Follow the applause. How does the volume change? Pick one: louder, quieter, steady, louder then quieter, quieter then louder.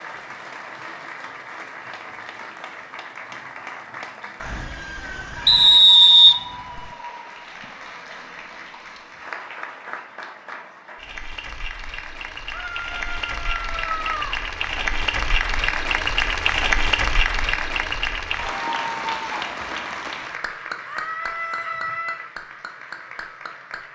louder then quieter.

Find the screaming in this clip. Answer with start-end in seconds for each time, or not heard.
4.3-5.8, 12.5-14.4, 20.9-22.2.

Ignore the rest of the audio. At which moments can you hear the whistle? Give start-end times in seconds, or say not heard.
5.5-6.8.